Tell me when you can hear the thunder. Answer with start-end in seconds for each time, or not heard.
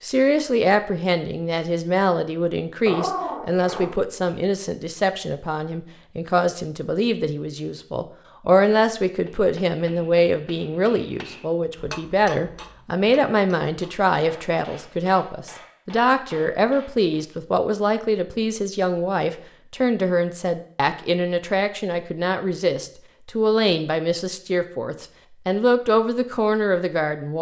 not heard.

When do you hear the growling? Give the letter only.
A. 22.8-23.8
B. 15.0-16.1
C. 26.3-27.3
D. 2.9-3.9
D.